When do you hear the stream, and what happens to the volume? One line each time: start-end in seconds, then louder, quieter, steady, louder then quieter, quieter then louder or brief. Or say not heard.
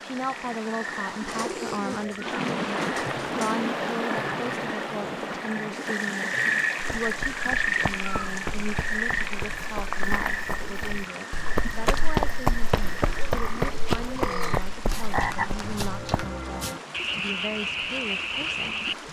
0.0-19.0 quieter.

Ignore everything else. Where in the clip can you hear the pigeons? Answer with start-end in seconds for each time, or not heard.
1.2-3.8, 12.8-14.7.